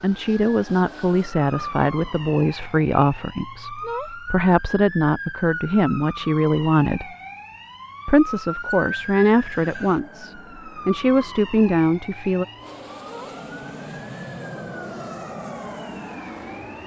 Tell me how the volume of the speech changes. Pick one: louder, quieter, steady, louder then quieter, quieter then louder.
steady.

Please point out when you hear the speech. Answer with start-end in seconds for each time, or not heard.
0.0-7.1, 8.1-12.4.